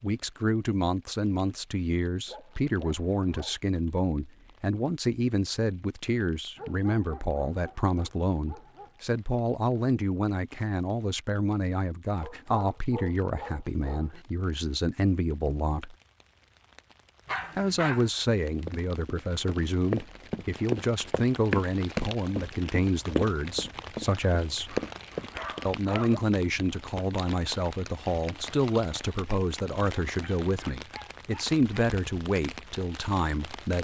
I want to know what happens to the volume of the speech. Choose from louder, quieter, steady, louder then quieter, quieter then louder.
steady.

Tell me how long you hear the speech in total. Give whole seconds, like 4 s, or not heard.
31 s.